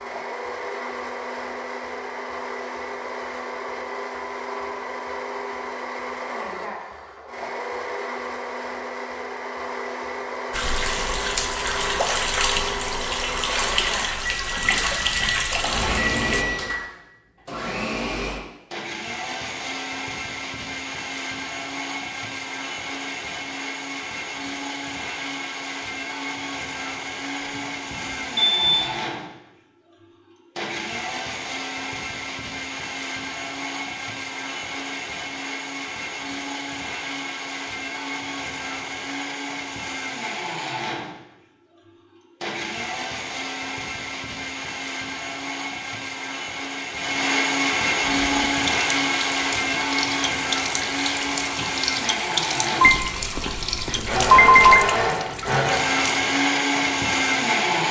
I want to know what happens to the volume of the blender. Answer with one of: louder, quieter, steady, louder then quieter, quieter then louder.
louder.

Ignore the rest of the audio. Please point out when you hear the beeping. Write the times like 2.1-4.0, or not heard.
14.2-16.7, 27.4-28.9, 52.8-54.9.